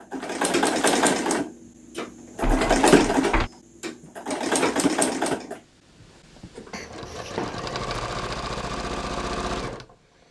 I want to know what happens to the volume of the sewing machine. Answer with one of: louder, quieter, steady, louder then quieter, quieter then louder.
quieter then louder.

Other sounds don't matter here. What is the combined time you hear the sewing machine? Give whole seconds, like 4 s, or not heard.
10 s.